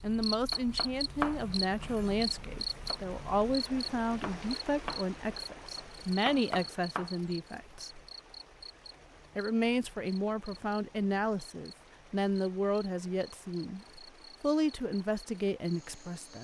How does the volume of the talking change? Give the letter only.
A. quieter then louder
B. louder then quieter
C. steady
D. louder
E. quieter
C.